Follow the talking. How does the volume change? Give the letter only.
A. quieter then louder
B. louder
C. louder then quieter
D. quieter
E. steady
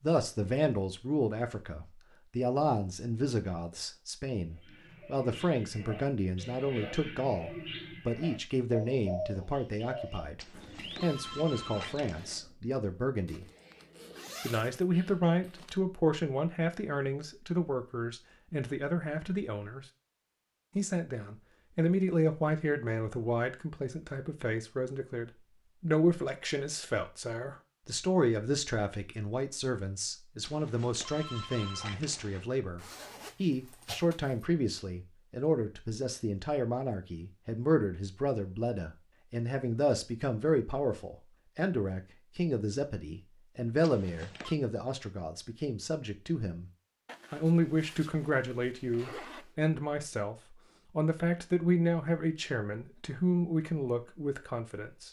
E.